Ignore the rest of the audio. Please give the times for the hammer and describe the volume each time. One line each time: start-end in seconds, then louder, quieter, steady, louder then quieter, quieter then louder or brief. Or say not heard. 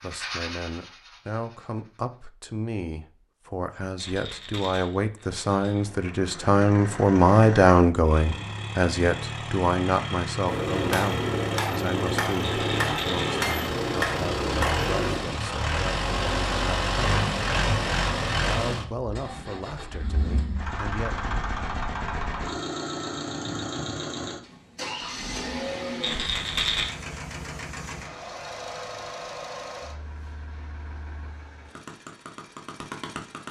10.4-15.2 steady.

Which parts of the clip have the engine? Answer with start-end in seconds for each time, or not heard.
5.7-33.4.